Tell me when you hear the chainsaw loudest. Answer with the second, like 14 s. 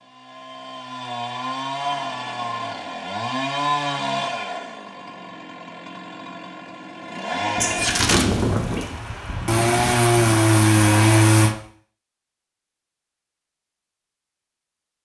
11 s.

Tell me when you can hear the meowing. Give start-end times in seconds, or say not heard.
7.5-8.9.